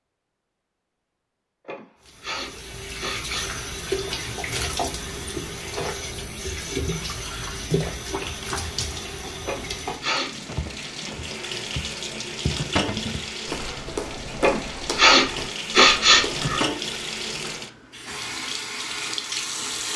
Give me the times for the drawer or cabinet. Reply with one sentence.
The drawer or cabinet can be heard from 12.8 to 13.2 s.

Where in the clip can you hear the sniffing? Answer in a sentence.
You can hear the sniffing from 1.6 to 3.5 s, from 9.4 to 10.3 s and from 14.3 to 16.6 s.